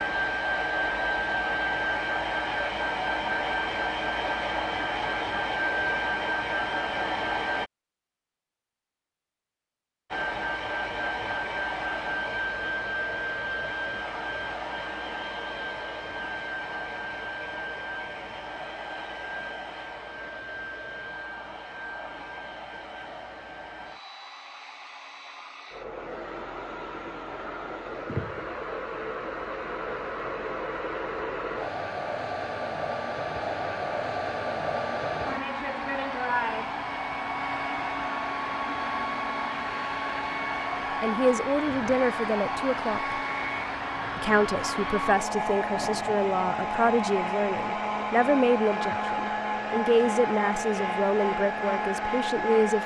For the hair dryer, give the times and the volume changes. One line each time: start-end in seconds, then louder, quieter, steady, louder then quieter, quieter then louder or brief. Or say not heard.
0.0-7.7 steady
10.1-52.8 quieter then louder.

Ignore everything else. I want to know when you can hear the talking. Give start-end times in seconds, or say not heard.
41.0-43.2, 44.1-52.8.